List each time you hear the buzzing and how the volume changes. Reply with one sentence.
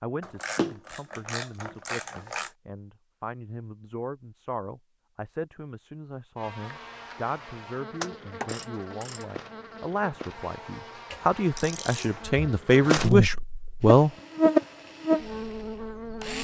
The buzzing can be heard from 6.3 to 16.4 s, getting louder.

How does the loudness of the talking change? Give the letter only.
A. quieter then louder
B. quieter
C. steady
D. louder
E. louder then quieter
D.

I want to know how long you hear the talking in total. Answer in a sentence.
The talking can be heard for 14 seconds in total.